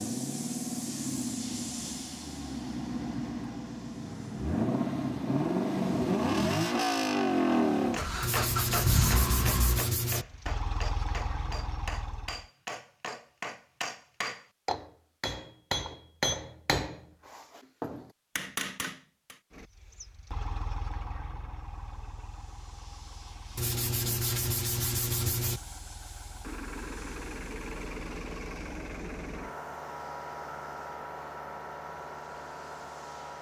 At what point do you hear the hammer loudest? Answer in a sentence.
The loudest moment of the hammer is at 16 seconds.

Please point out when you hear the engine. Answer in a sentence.
The engine can be heard from 0.0 to 12.4 s and from 19.6 to 33.3 s.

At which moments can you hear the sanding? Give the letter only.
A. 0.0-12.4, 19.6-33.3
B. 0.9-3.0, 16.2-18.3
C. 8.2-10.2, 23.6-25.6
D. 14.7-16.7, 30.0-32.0
C.